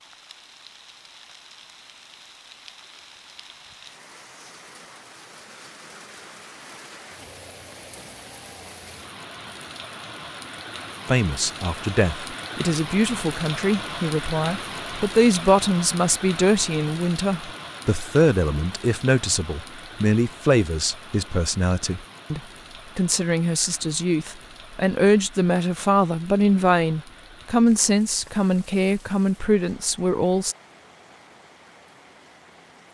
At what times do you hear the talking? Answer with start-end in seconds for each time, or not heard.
11.1-30.6.